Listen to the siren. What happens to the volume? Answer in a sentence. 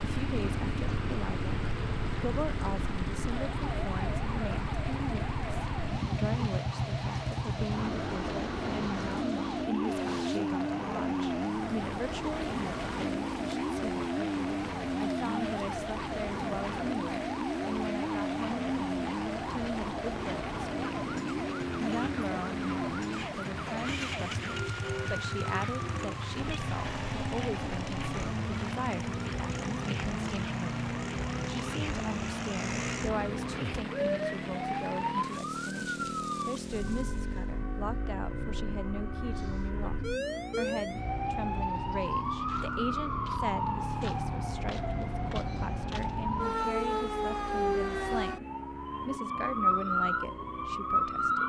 The loudness of the siren goes up.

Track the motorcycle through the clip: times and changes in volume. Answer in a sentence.
You can hear the motorcycle from 0.0 to 51.4 s, getting quieter.